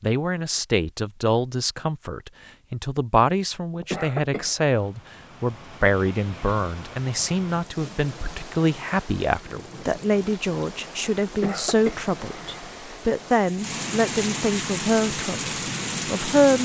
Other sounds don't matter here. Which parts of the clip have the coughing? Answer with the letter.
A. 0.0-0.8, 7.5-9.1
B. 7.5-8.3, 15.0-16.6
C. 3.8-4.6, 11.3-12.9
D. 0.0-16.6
C.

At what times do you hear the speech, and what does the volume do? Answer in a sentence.
The speech can be heard from 0.0 to 16.6 s, at a steady volume.